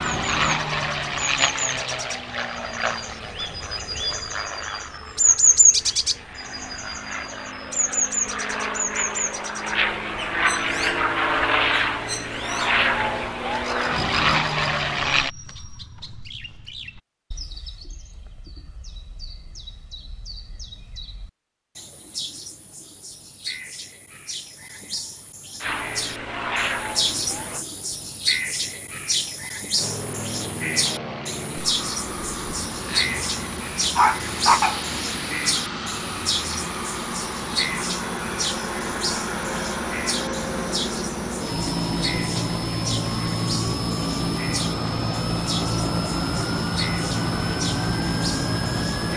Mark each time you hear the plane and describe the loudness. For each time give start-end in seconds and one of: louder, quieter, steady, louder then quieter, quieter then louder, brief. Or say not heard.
0.0-15.3 quieter then louder
25.6-27.6 brief
29.8-49.1 louder.